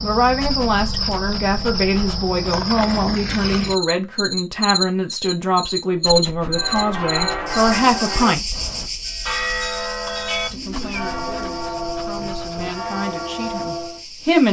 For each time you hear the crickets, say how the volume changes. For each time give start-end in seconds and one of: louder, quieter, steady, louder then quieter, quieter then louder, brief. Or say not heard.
0.0-14.4 quieter.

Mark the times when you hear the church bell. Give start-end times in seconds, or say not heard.
6.5-14.0.